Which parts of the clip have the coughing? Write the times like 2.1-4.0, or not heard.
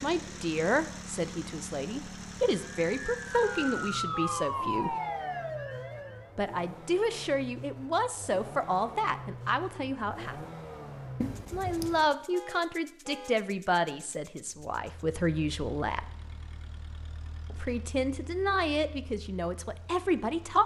11.2-12.1.